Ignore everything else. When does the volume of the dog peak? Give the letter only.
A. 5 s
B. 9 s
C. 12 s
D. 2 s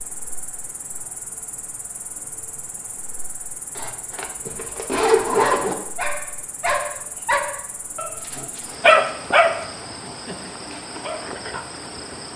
B.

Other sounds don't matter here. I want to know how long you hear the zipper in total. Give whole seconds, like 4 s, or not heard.
2 s.